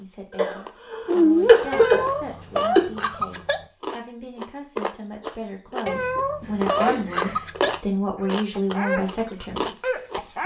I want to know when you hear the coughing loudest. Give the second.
2 s.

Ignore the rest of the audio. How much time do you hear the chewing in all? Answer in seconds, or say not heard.
10 s.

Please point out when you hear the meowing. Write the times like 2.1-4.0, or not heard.
1.7-3.6, 5.8-7.8.